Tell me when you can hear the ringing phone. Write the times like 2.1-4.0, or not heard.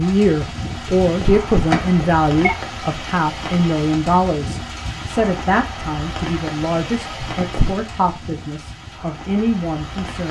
0.8-2.5, 7.2-7.8.